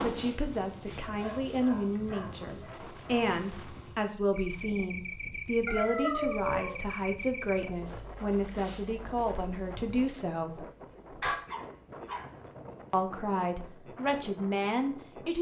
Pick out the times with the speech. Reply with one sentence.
You can hear the speech from 0.0 to 10.7 s and from 12.9 to 15.3 s.